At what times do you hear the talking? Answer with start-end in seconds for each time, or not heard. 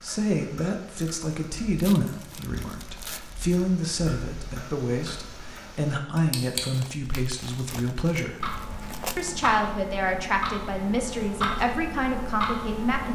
0.0-8.4, 9.2-13.1.